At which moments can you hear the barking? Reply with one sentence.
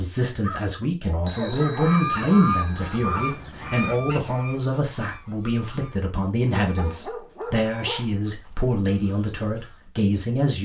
The barking can be heard from 0.3 to 2.0 s and from 6.5 to 8.1 s.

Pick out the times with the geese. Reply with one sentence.
The geese can be heard from 1.8 to 9.9 s.